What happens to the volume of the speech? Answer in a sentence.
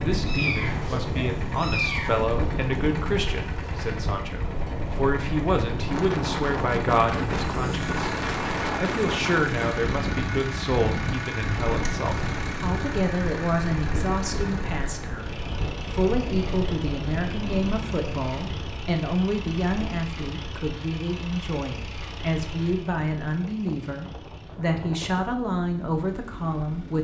The volume of the speech stays about the same.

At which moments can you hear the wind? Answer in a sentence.
The wind can be heard from 0.0 to 26.9 s.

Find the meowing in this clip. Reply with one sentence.
The meowing can be heard from 0.2 to 2.2 s.